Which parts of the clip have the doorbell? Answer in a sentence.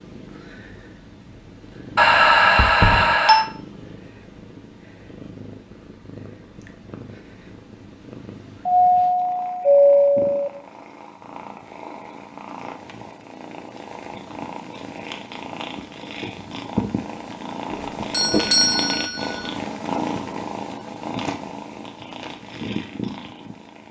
The doorbell can be heard from 1.9 to 3.5 s, from 8.7 to 10.5 s and from 18.1 to 19.2 s.